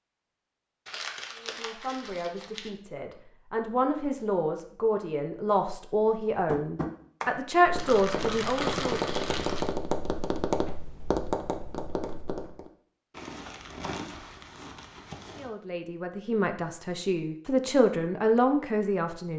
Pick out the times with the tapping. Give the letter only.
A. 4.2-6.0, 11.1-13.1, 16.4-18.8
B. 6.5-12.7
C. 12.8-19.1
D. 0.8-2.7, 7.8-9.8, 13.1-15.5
B.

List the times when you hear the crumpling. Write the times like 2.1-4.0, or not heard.
0.8-2.7, 7.8-9.8, 13.1-15.5.